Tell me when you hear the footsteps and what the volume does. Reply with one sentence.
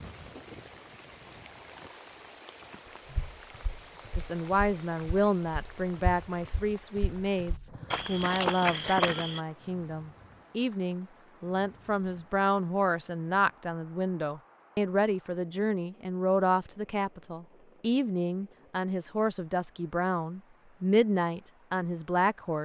You can hear the footsteps from 3.0 to 9.4 s, getting louder.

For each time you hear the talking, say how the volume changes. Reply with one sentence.
The talking can be heard from 4.2 to 22.6 s, at a steady volume.